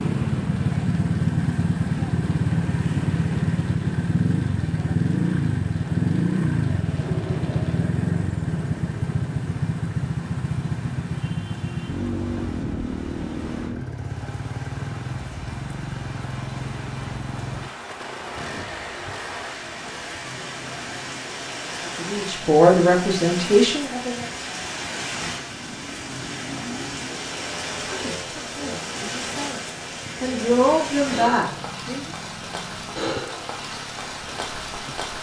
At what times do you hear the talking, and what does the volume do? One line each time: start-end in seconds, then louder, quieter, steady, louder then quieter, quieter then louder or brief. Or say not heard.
21.9-24.2 brief
27.9-32.1 louder.